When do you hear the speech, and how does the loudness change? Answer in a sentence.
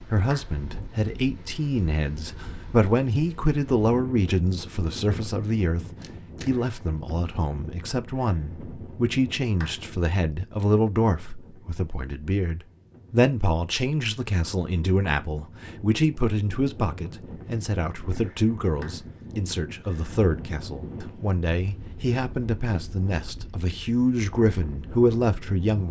You can hear the speech from 0.0 to 25.8 s, at a steady volume.